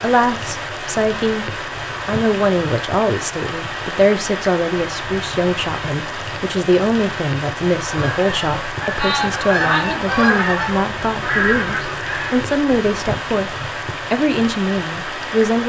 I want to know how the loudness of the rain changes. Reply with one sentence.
The volume of the rain stays about the same.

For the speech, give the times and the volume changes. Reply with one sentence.
You can hear the speech from 0.0 to 15.6 s, at a steady volume.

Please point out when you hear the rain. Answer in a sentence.
The rain can be heard from 0.0 to 15.6 s.